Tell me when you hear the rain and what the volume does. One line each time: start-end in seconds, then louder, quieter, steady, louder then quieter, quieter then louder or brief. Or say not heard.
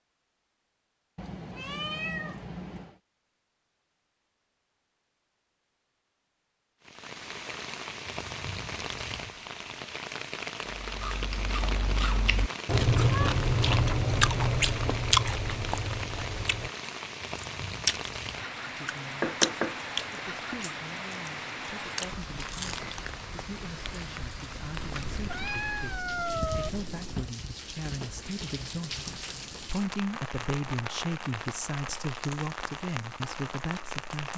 6.8-34.3 steady.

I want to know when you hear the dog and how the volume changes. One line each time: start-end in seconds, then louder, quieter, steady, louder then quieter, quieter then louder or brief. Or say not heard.
not heard.